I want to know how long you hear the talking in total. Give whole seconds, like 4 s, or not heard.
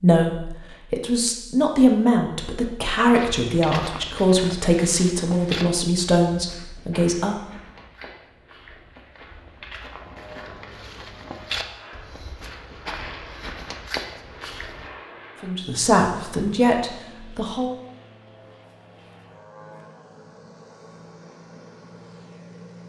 10 s.